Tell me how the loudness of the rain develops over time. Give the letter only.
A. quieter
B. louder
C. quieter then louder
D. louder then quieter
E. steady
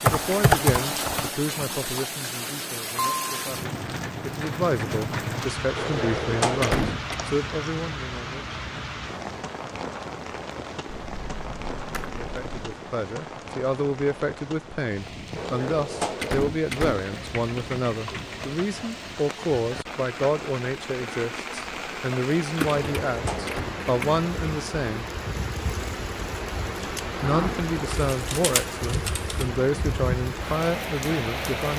C.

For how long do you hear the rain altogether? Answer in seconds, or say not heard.
32 s.